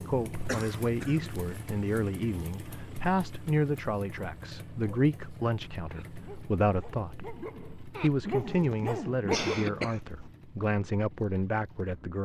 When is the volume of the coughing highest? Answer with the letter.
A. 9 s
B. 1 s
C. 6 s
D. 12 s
A.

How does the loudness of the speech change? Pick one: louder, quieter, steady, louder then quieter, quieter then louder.
steady.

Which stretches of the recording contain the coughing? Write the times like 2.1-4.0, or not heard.
0.5-1.4, 8.4-10.0.